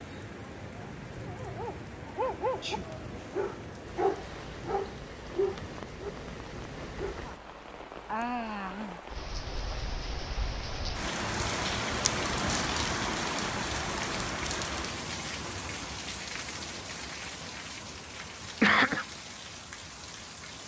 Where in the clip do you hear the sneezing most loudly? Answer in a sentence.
The volume of the sneezing peaks at 19 seconds.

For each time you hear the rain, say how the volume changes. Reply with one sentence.
You can hear the rain from 0.0 to 20.6 s, getting louder then quieter.